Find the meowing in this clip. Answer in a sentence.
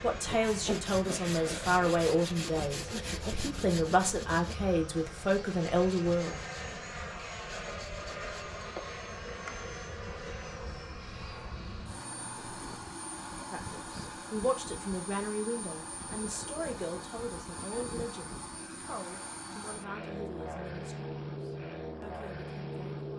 You can hear the meowing from 10.8 to 12.8 s.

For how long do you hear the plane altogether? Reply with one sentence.
You can hear the plane for 23 seconds altogether.